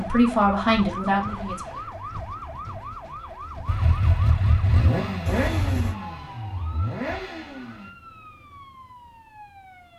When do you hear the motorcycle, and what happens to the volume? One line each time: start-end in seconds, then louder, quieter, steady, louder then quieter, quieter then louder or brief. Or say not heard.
3.6-7.9 quieter then louder.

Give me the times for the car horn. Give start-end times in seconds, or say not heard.
1.2-1.9, 5.2-6.0.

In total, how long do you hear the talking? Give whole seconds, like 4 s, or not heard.
2 s.